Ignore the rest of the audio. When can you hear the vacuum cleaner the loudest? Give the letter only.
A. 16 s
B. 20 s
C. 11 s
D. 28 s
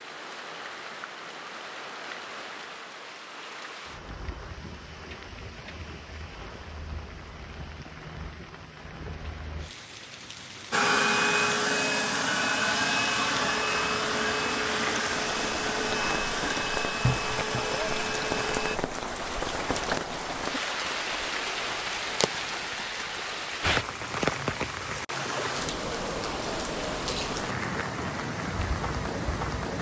C.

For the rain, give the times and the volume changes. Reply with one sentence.
The rain can be heard from 0.0 to 29.7 s, getting louder.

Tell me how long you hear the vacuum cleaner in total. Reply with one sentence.
You can hear the vacuum cleaner for 8 seconds altogether.